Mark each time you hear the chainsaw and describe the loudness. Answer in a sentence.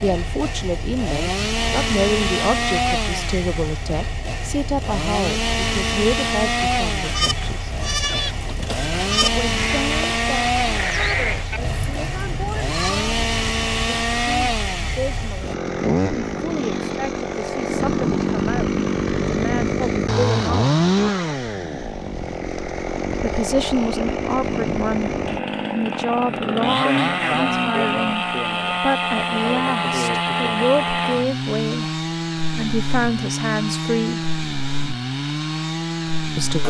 You can hear the chainsaw from 0.0 to 36.6 s, at a steady volume.